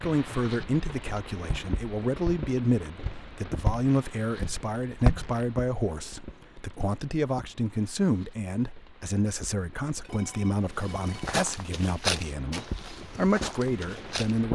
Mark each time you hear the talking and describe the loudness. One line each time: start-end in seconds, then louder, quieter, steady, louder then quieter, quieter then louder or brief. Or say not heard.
0.0-14.5 steady.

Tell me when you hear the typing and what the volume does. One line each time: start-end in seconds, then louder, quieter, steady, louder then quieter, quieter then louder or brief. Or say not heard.
not heard.